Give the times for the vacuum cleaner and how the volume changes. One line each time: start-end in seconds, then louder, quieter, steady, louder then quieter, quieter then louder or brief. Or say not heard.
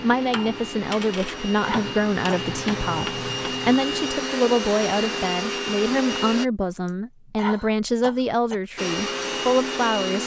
0.0-6.5 louder
8.8-10.2 brief.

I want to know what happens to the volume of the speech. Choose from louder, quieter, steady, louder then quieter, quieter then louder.
steady.